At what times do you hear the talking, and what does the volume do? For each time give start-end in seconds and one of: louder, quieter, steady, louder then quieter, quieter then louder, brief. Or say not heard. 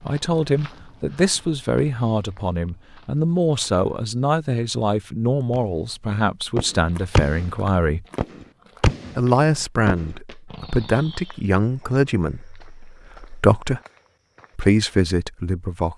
0.1-8.1 steady
9.2-13.8 quieter
14.6-15.9 brief.